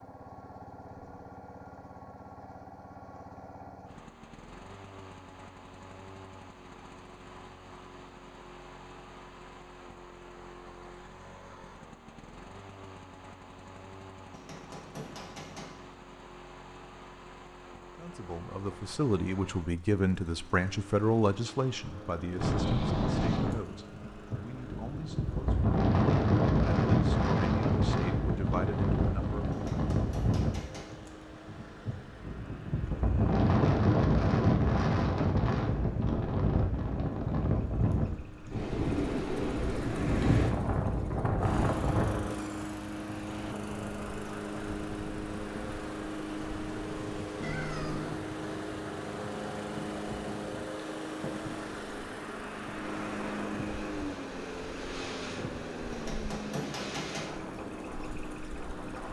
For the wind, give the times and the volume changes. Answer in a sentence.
The wind can be heard from 22.4 to 59.0 s, getting quieter.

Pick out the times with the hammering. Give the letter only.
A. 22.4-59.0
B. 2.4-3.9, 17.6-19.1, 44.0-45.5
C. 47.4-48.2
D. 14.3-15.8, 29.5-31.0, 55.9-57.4
D.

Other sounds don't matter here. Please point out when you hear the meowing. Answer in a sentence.
The meowing can be heard from 47.4 to 48.2 s.